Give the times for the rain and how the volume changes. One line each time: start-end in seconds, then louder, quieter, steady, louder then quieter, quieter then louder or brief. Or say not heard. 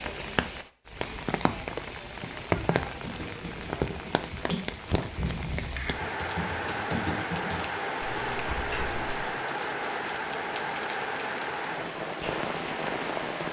0.0-13.4 steady.